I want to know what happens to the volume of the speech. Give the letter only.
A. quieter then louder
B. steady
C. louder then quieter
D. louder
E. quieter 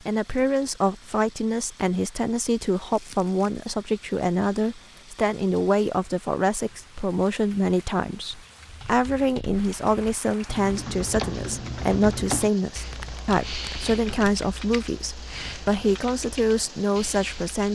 B.